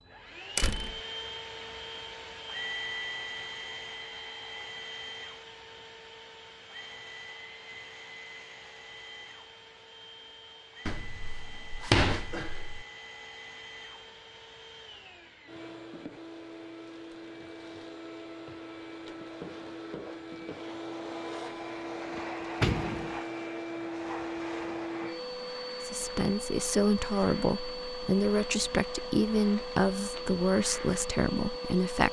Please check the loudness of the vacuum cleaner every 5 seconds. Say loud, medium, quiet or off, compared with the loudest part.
loud, medium, medium, medium, loud, loud, loud.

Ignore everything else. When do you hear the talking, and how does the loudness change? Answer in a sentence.
The talking can be heard from 25.8 to 32.0 s, at a steady volume.